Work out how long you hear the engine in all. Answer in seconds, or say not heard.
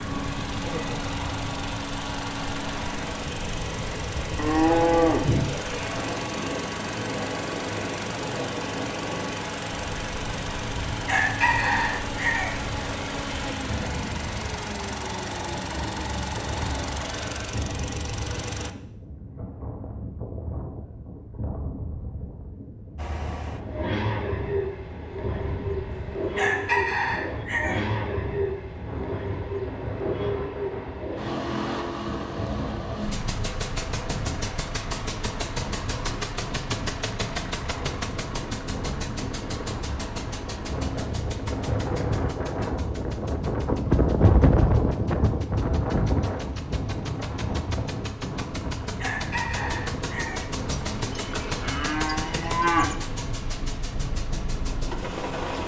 51 s.